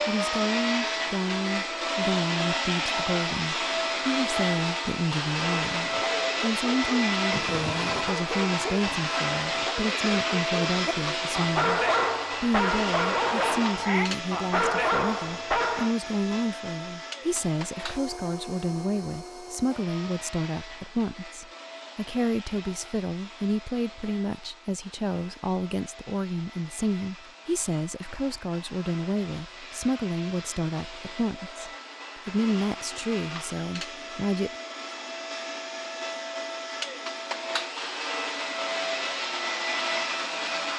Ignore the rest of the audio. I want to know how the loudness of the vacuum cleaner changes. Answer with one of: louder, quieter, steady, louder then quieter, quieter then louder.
quieter then louder.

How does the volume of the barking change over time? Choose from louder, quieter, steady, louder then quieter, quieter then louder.
louder.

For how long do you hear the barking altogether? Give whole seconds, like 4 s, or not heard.
10 s.